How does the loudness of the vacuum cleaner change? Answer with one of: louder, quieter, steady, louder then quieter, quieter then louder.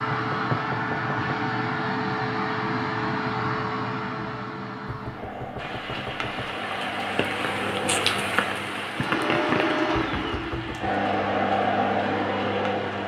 quieter then louder.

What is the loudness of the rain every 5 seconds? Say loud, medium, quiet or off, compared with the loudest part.
off, loud, medium.